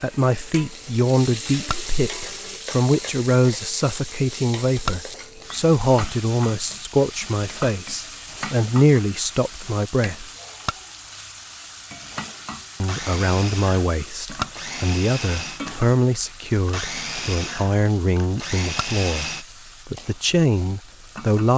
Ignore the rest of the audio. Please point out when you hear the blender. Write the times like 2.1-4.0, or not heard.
0.0-2.6, 12.7-19.4.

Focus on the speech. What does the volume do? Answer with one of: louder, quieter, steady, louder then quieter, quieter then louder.
steady.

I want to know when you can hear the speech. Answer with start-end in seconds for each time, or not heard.
0.0-10.2, 12.8-21.5.